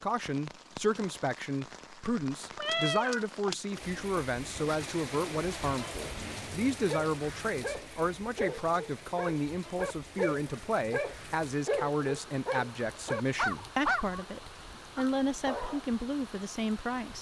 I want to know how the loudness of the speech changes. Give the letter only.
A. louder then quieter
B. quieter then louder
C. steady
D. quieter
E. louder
C.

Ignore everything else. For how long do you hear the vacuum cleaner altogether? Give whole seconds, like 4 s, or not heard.
not heard.